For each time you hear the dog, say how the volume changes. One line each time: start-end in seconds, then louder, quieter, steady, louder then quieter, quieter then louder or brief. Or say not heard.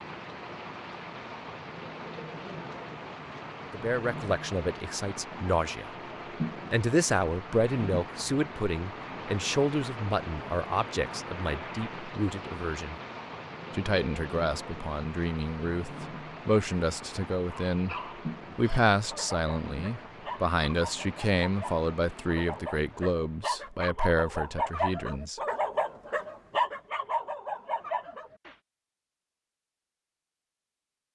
17.7-28.6 louder.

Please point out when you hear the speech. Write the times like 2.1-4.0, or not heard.
3.7-5.9, 6.7-12.9, 13.7-17.9, 18.6-25.4.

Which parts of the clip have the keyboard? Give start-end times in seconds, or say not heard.
not heard.